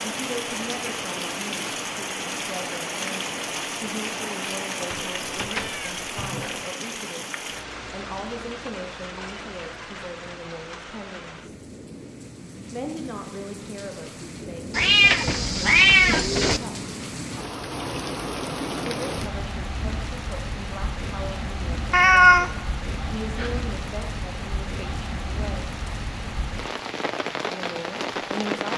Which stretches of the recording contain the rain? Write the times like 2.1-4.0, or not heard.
0.0-28.7.